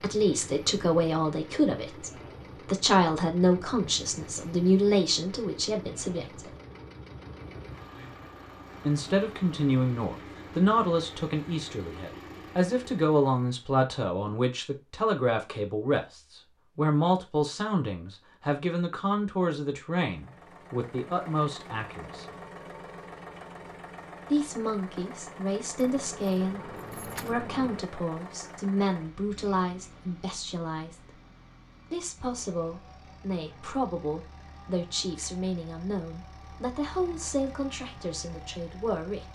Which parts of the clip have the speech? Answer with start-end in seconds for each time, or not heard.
0.0-6.5, 8.8-22.2, 24.3-31.2, 31.9-39.3.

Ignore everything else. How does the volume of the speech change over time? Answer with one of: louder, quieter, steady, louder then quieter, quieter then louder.
quieter.